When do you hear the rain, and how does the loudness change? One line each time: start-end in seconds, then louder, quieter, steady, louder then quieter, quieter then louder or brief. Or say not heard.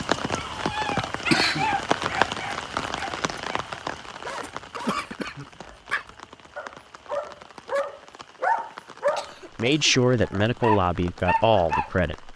0.0-12.3 quieter.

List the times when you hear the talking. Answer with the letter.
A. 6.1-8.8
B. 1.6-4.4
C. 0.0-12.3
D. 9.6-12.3
D.